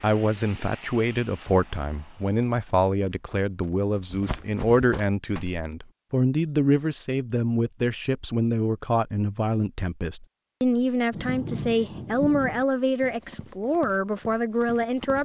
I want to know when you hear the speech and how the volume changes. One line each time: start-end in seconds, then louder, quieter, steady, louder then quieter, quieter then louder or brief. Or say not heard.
0.0-15.2 steady.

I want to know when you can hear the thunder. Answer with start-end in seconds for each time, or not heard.
11.1-12.7.